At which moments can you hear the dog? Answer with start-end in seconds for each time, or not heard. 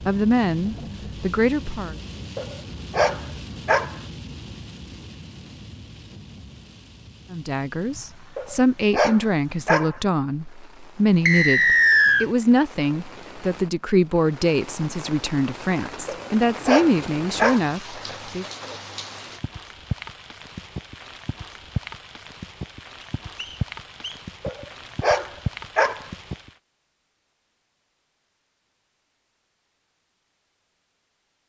2.4-4.0, 8.3-10.0, 16.1-17.7, 24.4-26.1.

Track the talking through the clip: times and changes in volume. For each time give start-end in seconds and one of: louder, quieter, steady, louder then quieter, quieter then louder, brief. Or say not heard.
0.1-1.9 brief
7.3-18.4 steady.